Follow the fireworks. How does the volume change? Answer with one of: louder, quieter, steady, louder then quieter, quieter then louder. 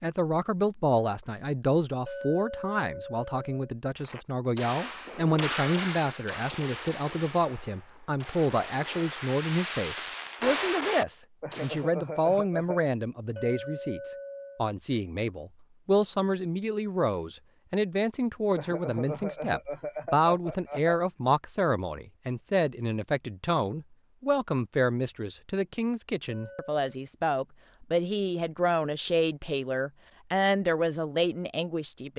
quieter then louder.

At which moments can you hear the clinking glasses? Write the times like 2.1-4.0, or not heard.
2.0-3.7, 13.3-14.7, 26.2-26.8.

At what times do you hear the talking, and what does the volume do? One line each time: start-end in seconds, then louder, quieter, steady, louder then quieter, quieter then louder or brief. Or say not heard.
0.0-32.1 steady.